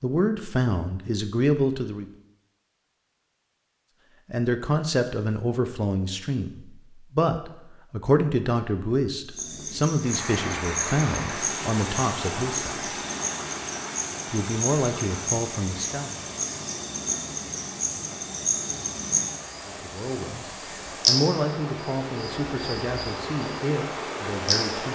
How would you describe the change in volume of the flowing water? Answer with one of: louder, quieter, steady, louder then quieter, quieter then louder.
quieter then louder.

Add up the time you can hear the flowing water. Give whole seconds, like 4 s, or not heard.
15 s.